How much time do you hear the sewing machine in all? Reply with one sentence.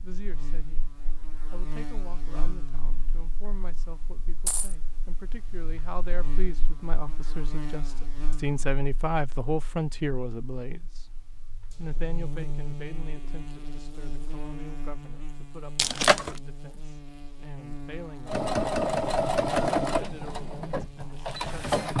The sewing machine can be heard for 4 seconds in total.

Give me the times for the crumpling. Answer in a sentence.
The crumpling can be heard from 15.8 to 16.4 s.